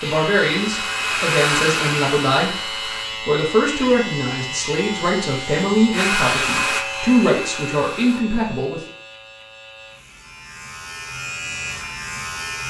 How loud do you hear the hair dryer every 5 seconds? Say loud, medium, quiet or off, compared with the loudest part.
loud, loud, off.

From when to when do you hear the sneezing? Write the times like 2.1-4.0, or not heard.
not heard.